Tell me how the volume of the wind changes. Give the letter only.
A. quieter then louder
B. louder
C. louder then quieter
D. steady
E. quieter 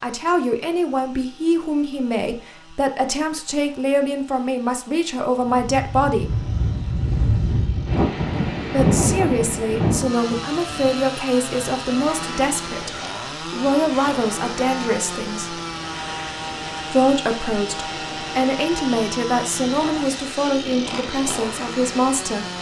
E.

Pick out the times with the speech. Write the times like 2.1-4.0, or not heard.
0.0-6.4, 8.7-15.6, 16.9-22.4.